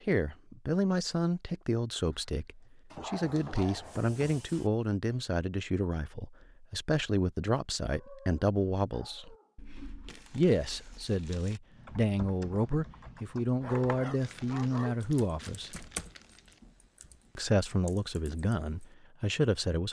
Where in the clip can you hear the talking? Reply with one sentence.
The talking can be heard from 0.1 to 9.3 s, from 10.3 to 15.8 s and from 17.4 to 19.8 s.